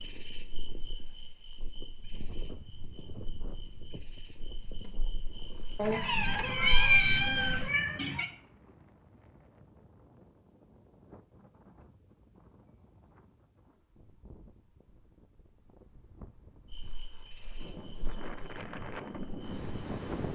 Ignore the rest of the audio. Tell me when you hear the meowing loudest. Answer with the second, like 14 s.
7 s.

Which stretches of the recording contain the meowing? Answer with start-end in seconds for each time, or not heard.
5.8-8.2.